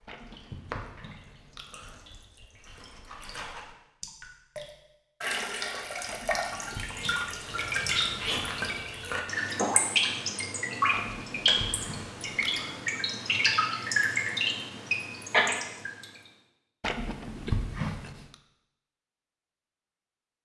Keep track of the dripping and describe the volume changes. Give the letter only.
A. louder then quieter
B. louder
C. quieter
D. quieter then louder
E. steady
B.